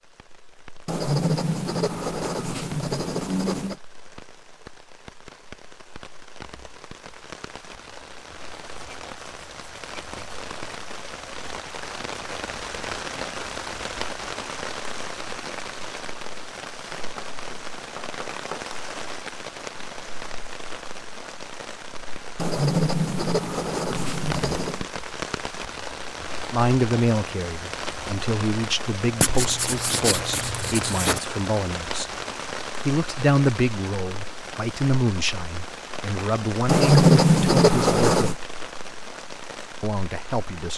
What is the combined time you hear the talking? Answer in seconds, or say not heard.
12 s.